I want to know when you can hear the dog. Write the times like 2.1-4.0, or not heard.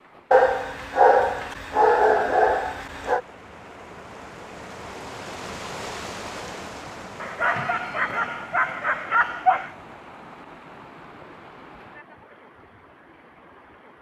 0.3-3.2, 7.2-9.7.